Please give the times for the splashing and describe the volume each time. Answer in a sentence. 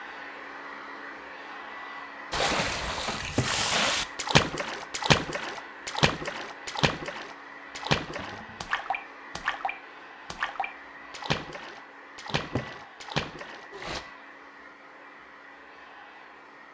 You can hear the splashing from 2.3 to 14.0 s, getting quieter.